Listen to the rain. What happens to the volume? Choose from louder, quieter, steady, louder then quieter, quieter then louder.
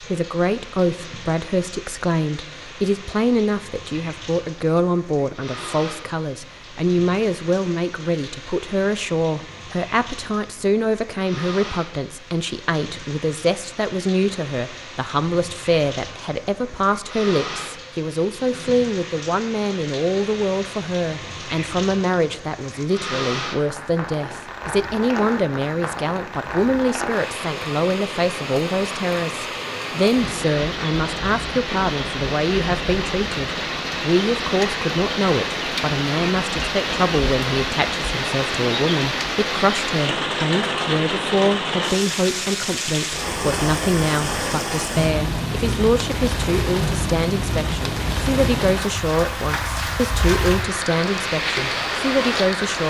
louder.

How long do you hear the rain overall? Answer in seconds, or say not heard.
53 s.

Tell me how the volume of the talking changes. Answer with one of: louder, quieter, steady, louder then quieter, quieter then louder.
steady.